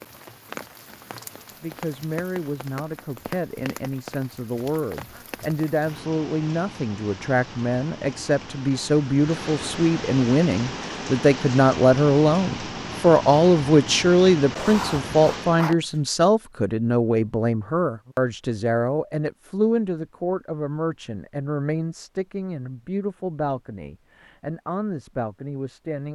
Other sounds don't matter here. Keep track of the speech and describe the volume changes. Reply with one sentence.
The loudness of the speech goes up, then down.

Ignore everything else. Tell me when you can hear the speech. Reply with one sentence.
The speech can be heard from 1.6 to 26.0 s.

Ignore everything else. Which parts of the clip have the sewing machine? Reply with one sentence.
The sewing machine can't be heard in this clip.